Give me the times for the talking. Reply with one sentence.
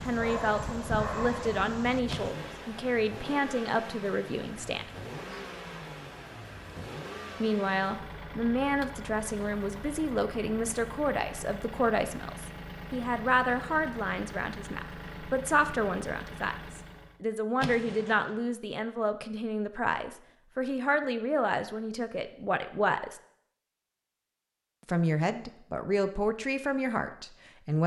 The talking can be heard from 0.0 to 4.9 s, from 7.4 to 23.2 s and from 24.9 to 27.8 s.